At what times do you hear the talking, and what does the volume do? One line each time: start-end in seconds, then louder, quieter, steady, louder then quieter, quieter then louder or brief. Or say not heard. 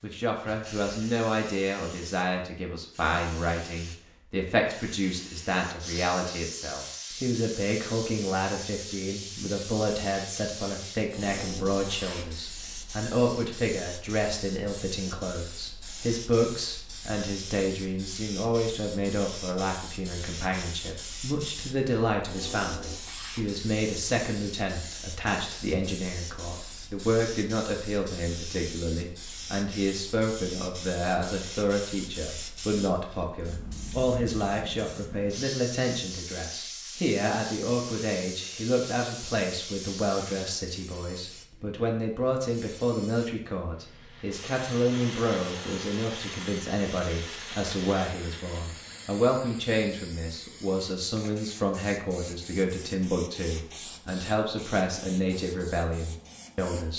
0.0-56.9 steady.